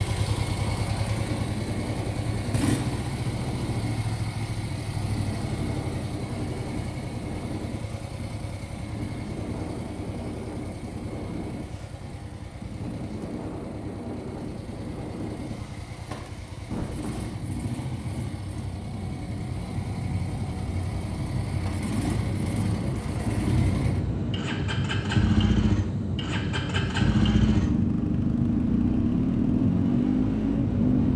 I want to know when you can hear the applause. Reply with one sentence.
You can't hear the applause here.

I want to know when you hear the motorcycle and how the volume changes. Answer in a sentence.
The motorcycle can be heard from 0.0 to 31.1 s, getting quieter then louder.